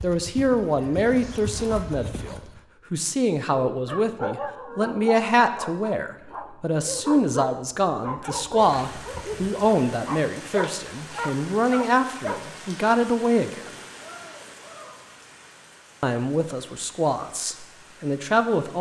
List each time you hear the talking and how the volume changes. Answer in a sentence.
The talking can be heard from 0.0 to 13.7 s, at a steady volume; and briefly from 16.0 to 18.7 s.